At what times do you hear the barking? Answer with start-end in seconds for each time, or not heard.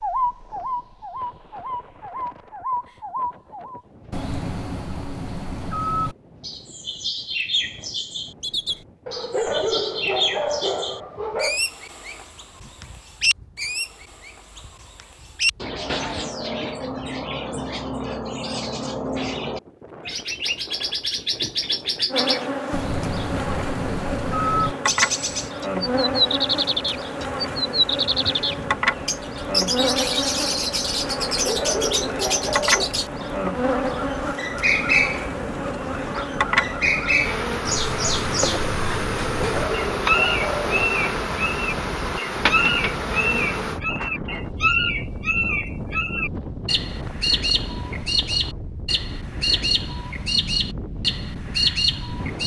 9.1-11.6, 31.3-32.9, 39.3-41.0.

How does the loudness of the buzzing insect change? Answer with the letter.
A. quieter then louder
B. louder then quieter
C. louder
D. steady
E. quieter
D.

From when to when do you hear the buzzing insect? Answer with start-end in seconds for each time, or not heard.
22.1-43.8.